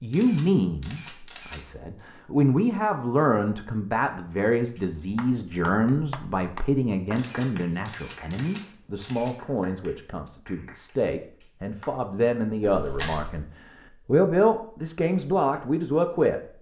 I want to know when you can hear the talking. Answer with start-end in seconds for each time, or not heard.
0.0-16.4.